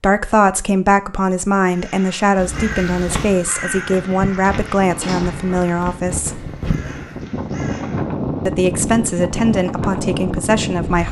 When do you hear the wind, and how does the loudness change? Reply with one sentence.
The wind can be heard from 2.4 to 11.0 s, getting louder.